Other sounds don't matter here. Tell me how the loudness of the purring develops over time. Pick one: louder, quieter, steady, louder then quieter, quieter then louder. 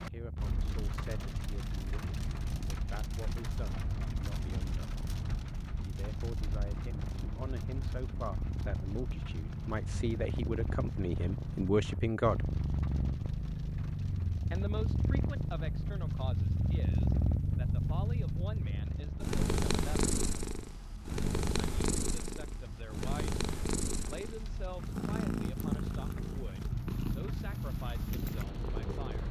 louder.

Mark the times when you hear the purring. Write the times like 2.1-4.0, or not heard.
0.0-29.2.